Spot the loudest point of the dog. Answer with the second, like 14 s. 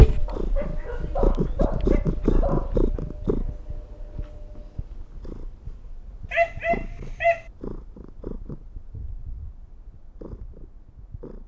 7 s.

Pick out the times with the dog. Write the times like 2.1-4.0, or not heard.
0.2-2.8, 6.3-7.4.